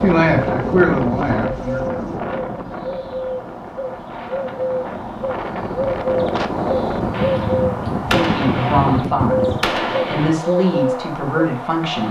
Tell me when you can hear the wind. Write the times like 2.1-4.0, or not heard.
0.0-9.6.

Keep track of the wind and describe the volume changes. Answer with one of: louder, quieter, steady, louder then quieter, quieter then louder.
quieter then louder.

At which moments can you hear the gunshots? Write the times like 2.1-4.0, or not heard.
7.1-10.3.